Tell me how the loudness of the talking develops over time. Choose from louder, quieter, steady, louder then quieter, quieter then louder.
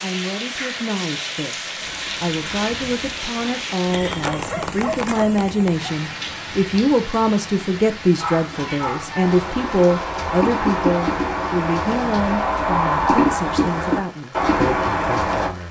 louder then quieter.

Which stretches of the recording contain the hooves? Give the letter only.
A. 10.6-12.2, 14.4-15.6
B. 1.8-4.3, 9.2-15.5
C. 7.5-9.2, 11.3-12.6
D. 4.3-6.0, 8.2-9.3
B.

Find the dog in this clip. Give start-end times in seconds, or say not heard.
4.3-6.0, 8.2-9.3.